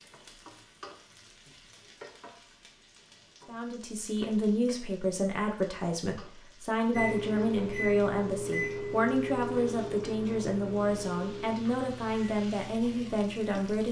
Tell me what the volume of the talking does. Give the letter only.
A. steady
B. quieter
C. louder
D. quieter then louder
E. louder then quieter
A.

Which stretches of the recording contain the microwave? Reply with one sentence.
The microwave can be heard from 6.9 to 13.8 s.